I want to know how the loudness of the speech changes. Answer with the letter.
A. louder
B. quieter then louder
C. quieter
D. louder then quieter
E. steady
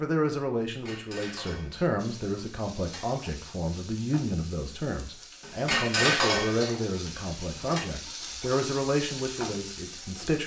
E.